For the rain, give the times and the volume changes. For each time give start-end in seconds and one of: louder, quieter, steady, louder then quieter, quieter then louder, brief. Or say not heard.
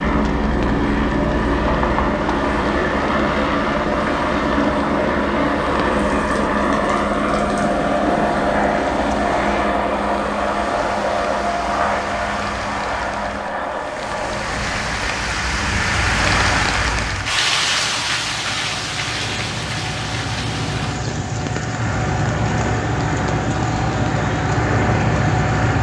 0.0-25.7 louder then quieter.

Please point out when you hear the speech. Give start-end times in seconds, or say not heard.
not heard.